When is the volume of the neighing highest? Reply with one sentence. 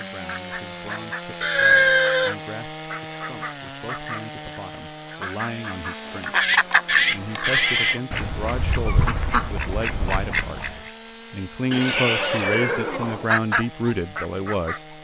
The volume of the neighing peaks at 2 seconds.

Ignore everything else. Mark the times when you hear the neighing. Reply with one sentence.
You can hear the neighing from 1.4 to 2.4 s, from 6.4 to 8.0 s and from 11.7 to 13.2 s.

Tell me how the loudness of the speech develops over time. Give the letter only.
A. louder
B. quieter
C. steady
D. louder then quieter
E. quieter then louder
A.